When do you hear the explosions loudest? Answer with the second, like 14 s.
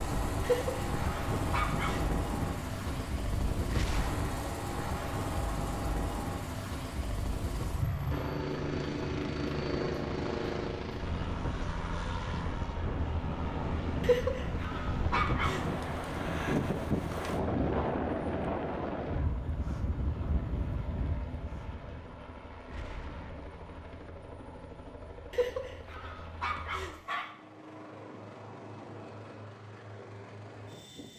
4 s.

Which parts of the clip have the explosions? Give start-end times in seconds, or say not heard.
3.7-4.3, 22.6-23.6.